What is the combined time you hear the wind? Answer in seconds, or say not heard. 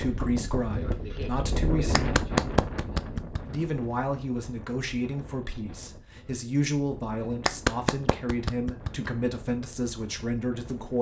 11 s.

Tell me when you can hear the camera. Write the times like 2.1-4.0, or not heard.
not heard.